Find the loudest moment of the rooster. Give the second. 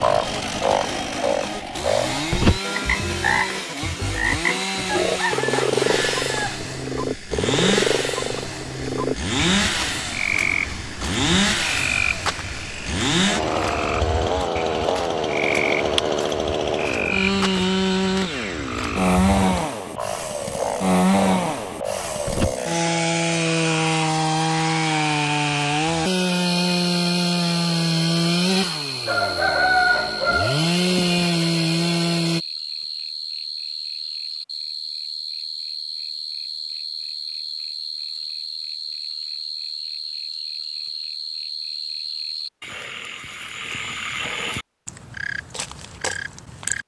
30 s.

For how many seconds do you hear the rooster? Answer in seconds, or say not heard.
3 s.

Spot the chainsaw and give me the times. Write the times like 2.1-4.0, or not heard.
0.0-32.4.